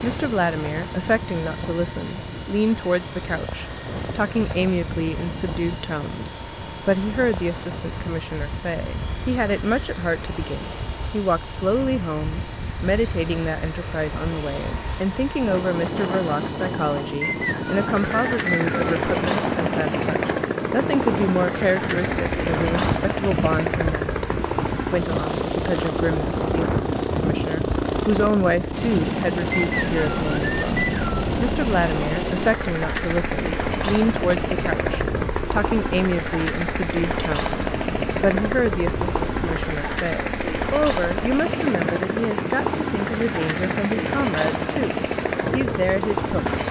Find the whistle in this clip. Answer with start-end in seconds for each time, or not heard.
17.2-19.0, 29.5-31.3.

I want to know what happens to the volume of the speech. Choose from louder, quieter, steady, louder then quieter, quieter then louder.
steady.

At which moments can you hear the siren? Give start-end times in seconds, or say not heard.
not heard.